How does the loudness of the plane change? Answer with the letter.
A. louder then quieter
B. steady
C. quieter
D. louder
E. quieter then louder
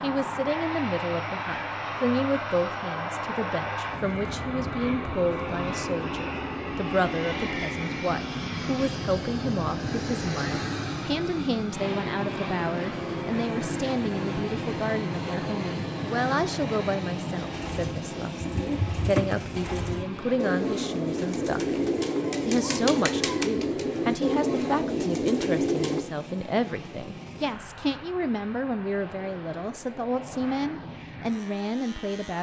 C.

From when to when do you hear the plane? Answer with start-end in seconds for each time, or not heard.
0.0-32.3.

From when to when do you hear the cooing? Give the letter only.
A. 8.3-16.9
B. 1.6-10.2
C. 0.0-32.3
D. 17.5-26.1
D.